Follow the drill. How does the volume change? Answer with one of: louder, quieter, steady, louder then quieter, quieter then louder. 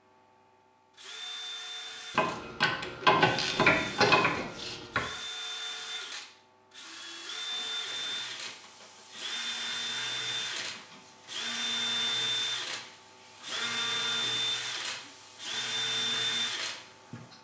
louder.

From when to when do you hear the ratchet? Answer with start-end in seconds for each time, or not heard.
2.1-5.0.